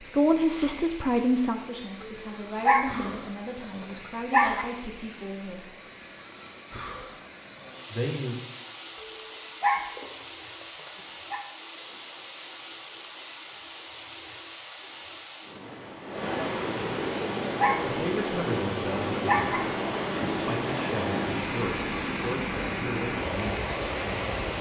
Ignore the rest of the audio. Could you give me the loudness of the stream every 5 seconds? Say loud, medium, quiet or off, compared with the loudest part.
quiet, quiet, quiet, loud, loud.